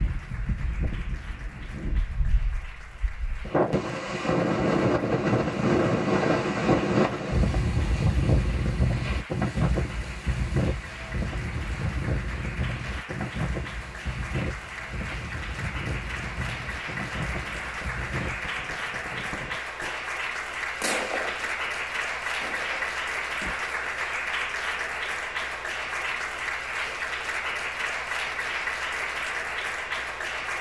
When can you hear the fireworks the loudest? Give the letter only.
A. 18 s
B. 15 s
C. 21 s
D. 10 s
C.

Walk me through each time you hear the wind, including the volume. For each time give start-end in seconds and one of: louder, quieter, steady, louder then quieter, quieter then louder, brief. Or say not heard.
0.0-18.5 louder then quieter.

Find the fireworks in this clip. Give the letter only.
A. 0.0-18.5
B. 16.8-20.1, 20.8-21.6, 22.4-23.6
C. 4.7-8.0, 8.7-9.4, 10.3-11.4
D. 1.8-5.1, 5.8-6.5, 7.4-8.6
B.